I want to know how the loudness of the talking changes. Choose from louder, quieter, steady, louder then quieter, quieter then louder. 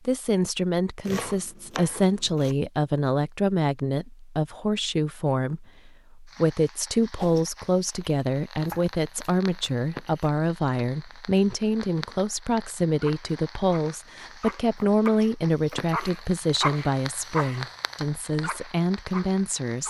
steady.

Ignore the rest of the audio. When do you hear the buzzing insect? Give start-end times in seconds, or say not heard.
not heard.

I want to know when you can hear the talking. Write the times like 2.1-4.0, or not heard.
0.1-19.8.